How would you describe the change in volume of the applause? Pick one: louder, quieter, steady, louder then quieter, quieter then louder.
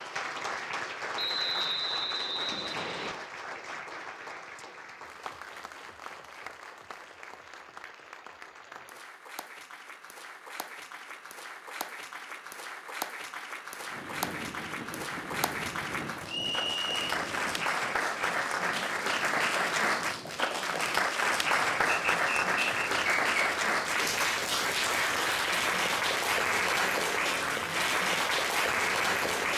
quieter then louder.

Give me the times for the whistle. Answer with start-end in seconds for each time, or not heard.
1.1-3.1, 16.2-17.1, 22.1-23.5.